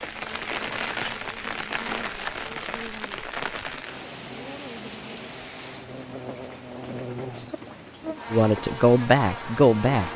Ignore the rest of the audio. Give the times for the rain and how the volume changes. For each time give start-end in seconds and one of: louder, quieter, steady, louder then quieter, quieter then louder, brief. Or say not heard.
0.0-10.1 quieter.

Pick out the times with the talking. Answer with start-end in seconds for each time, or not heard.
8.3-10.1.